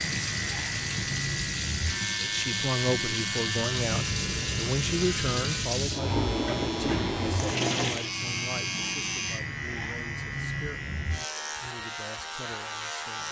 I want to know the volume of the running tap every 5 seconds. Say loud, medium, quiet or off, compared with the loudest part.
loud, loud, off.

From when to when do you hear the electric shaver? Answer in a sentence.
You can hear the electric shaver from 0.0 to 13.2 s.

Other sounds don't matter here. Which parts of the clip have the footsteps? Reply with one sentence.
The footsteps can't be heard in this clip.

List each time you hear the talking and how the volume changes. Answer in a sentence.
You can hear the talking from 2.2 to 13.2 s, getting quieter.